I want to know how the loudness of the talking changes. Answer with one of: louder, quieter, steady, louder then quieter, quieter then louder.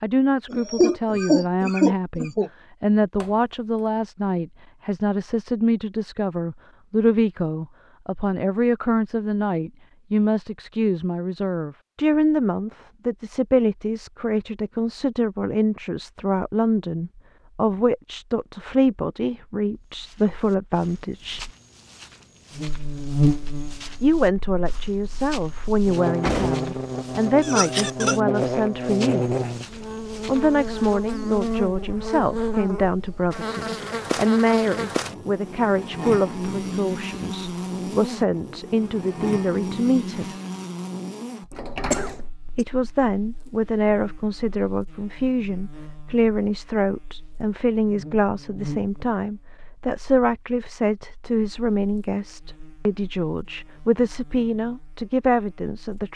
steady.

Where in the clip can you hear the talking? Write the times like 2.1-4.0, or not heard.
0.0-21.5, 24.0-29.4, 30.2-40.4, 42.5-56.1.